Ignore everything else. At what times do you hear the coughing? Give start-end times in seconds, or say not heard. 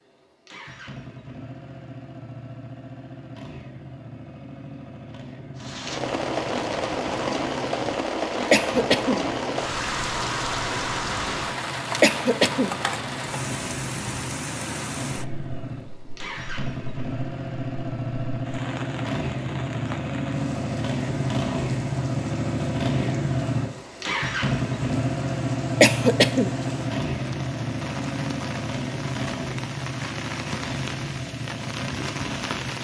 8.5-9.2, 12.0-12.8, 25.8-26.5.